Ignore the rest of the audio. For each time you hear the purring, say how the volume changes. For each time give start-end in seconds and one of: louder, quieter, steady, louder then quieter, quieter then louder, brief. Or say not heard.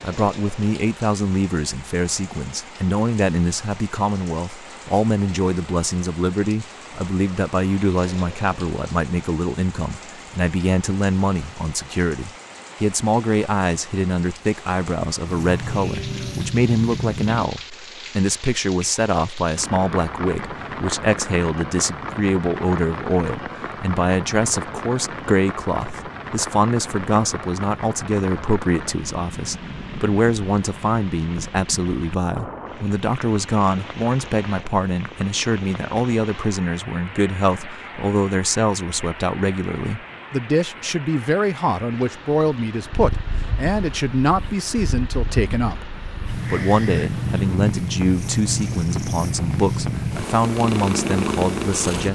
15.2-17.5 brief
42.8-52.1 louder.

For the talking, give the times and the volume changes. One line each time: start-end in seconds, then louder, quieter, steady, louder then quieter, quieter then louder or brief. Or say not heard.
0.0-52.1 steady.